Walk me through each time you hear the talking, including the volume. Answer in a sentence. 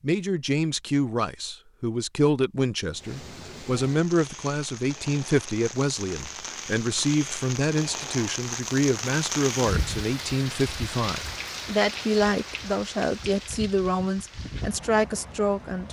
You can hear the talking from 0.0 to 15.8 s, at a steady volume.